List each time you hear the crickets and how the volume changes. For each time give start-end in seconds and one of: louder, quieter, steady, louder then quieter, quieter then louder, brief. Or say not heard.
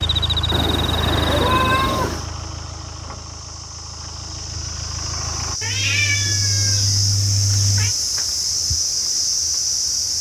0.0-10.1 quieter then louder.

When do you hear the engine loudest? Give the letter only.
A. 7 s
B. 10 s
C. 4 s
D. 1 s
D.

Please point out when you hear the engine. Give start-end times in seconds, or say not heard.
0.0-5.6.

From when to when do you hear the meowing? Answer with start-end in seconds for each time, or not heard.
0.5-2.2, 5.6-8.0.